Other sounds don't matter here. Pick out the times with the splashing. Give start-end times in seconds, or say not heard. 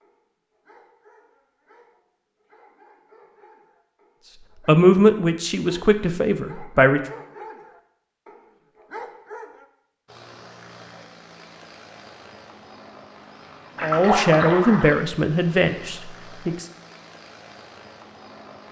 13.8-15.0.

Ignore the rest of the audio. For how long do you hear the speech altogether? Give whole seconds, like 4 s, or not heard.
5 s.